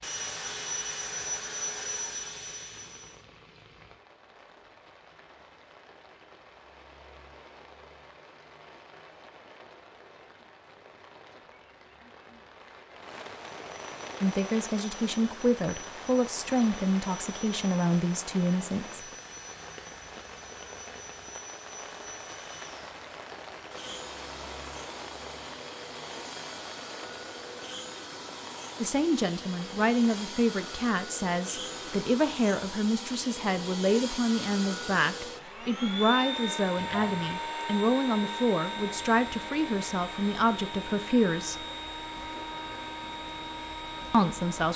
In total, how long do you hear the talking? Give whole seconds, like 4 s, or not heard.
18 s.